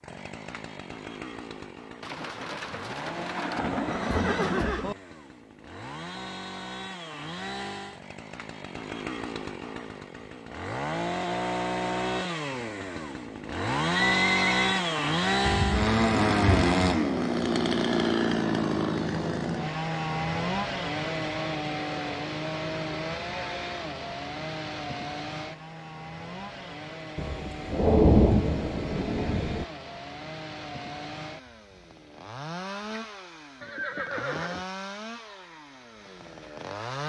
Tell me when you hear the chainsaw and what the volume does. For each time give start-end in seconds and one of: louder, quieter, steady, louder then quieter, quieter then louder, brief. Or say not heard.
0.0-37.0 louder then quieter.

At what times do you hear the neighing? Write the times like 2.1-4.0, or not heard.
3.8-5.0, 14.2-14.8, 33.6-34.6.